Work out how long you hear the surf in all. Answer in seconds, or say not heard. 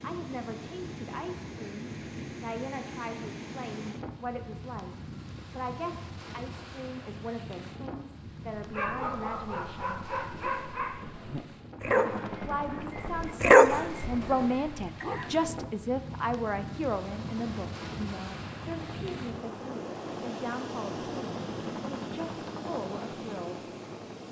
24 s.